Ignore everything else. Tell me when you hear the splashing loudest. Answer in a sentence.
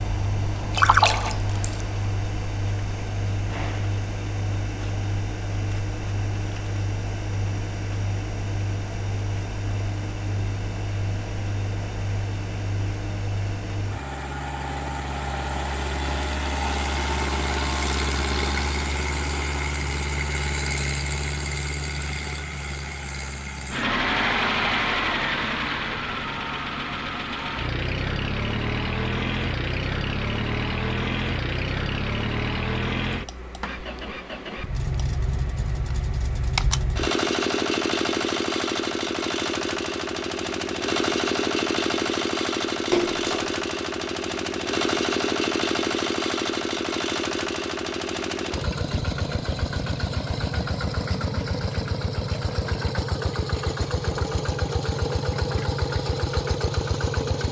The volume of the splashing peaks at 1 second.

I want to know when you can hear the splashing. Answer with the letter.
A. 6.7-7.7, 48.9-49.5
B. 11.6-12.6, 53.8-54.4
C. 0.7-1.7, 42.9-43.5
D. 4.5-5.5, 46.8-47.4
C.